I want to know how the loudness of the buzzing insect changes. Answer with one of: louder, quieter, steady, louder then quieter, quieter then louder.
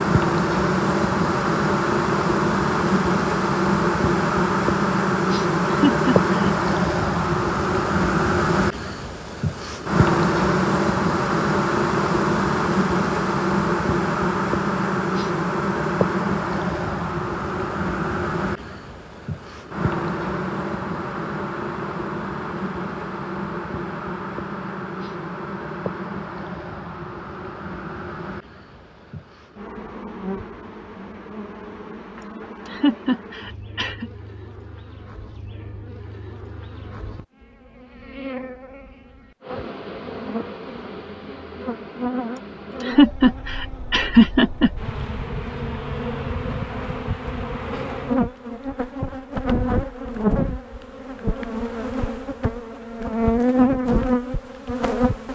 quieter then louder.